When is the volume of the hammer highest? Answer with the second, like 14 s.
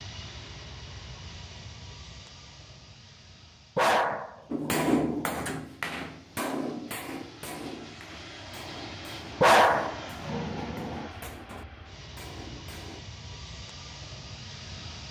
5 s.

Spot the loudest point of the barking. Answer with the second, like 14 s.
10 s.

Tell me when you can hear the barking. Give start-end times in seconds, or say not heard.
3.8-5.5, 9.4-11.1.